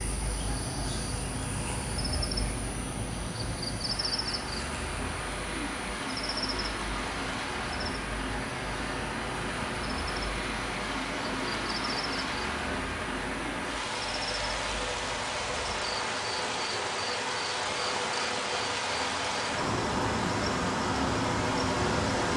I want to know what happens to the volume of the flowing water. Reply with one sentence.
The volume of the flowing water goes up.